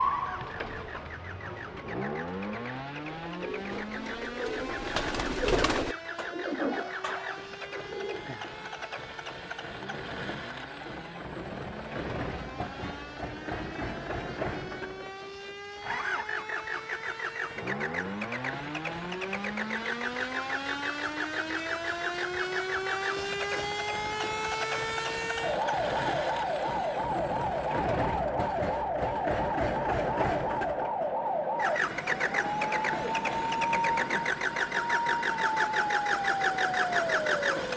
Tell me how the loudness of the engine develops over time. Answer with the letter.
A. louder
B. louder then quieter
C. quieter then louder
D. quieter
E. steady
A.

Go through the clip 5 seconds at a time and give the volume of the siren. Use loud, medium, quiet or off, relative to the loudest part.
medium, quiet, quiet, medium, loud, loud, loud, loud.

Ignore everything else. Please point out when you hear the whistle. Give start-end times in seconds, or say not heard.
not heard.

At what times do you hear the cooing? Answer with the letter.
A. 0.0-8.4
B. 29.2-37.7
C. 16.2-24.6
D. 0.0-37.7
A.